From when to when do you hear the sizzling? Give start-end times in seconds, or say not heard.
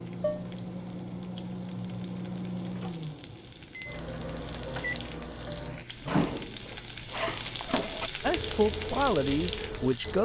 0.0-10.2.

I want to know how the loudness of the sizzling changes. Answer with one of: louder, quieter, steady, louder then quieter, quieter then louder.
louder.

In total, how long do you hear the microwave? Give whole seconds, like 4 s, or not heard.
10 s.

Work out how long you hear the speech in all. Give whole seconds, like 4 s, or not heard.
2 s.